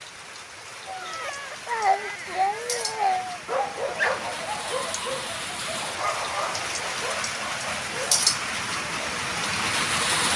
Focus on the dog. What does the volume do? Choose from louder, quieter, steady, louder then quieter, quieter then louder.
quieter.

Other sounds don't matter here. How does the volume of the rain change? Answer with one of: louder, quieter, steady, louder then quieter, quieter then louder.
louder.